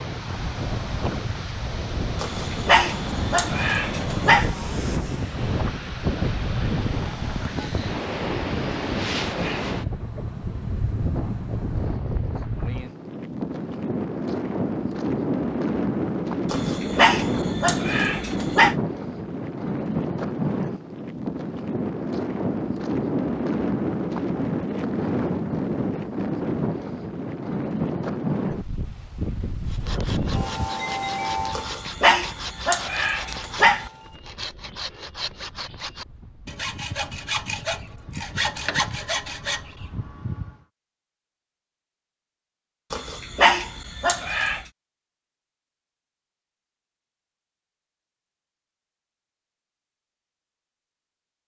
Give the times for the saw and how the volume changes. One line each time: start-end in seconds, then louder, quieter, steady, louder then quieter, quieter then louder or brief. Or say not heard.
29.6-40.6 louder.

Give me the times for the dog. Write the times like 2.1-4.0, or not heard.
2.2-4.5, 16.5-18.8, 31.5-33.9, 42.9-44.6.